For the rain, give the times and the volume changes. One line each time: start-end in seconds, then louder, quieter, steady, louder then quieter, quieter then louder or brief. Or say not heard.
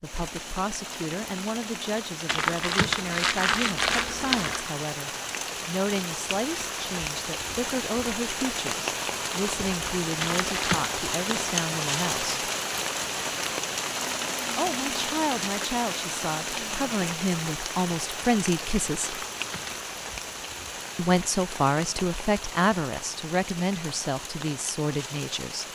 0.0-25.7 louder then quieter.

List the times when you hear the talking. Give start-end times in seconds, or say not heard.
0.0-12.4, 14.6-19.2, 20.9-25.6.